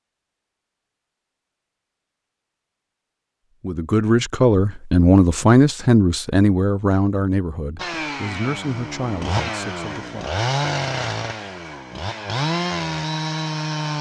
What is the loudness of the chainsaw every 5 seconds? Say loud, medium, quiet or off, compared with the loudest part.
off, loud, loud.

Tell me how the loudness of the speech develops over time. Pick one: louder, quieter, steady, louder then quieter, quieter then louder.
quieter.